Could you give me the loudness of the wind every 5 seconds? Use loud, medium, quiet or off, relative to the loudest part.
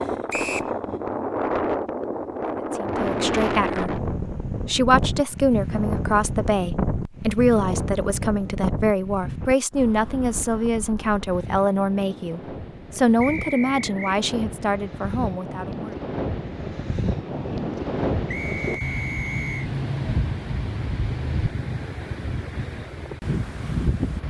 loud, loud, medium, loud, loud.